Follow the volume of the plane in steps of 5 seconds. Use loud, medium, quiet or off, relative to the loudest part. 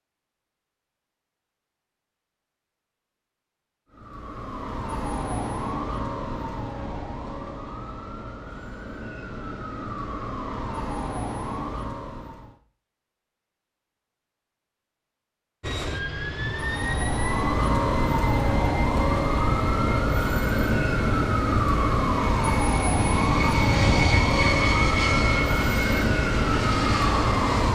off, off, off, medium, loud, loud.